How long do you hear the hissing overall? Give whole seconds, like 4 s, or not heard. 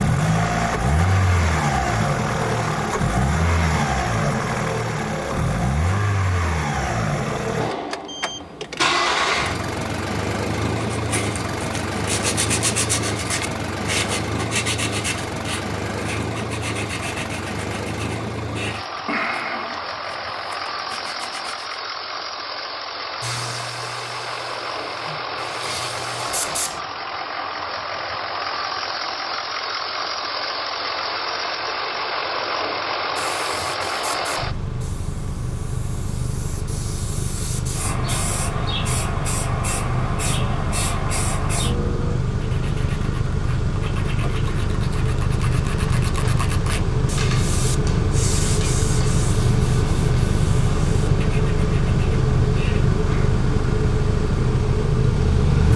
13 s.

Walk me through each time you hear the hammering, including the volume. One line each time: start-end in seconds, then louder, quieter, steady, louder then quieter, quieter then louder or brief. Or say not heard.
not heard.